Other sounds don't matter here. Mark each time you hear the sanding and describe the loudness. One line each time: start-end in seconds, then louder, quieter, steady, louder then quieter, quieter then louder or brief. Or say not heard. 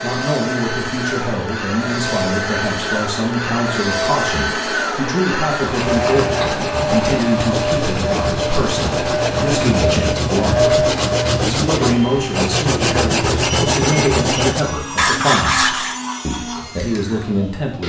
5.5-16.0 louder.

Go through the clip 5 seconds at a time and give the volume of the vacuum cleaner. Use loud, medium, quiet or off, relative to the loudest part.
loud, loud, loud, medium.